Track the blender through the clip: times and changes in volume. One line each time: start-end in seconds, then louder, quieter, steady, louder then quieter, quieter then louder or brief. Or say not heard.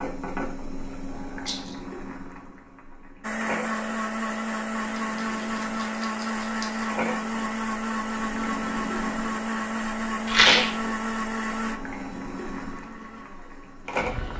3.2-14.3 quieter.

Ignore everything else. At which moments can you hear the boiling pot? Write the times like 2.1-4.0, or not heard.
0.0-14.3.